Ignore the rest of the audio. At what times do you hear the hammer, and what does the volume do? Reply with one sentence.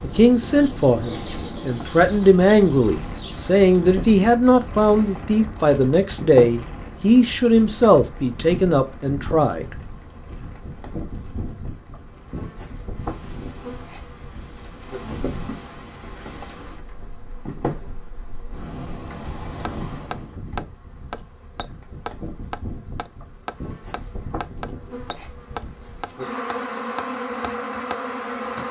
You can hear the hammer from 19.6 to 28.6 s, at a steady volume.